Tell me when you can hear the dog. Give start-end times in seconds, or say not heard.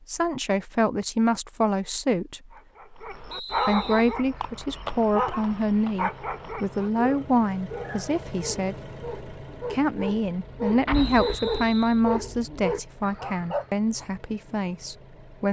2.5-13.7.